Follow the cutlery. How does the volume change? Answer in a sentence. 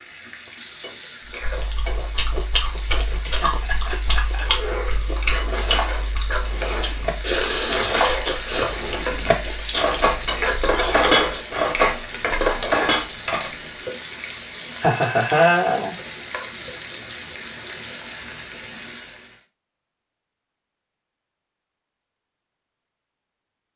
The loudness of the cutlery goes up.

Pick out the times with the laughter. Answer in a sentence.
You can hear the laughter from 3.2 to 4.5 s and from 14.6 to 15.9 s.